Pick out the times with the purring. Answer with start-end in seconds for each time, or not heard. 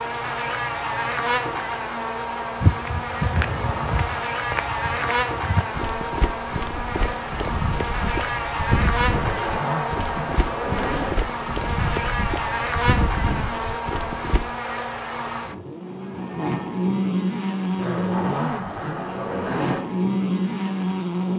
not heard.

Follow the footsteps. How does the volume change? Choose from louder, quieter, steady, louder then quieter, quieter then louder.
steady.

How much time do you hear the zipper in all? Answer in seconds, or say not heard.
5 s.